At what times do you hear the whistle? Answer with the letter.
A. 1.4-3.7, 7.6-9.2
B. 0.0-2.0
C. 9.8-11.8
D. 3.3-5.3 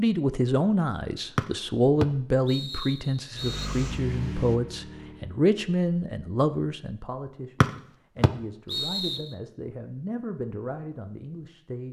A.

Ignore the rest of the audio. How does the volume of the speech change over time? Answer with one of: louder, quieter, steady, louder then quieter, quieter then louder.
quieter.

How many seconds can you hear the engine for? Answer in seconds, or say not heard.
2 s.